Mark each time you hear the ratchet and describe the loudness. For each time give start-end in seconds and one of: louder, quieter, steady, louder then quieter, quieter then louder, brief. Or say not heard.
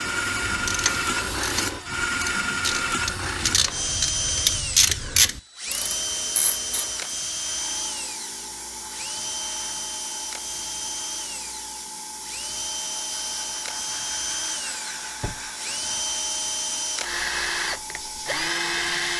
0.2-6.9 louder then quieter.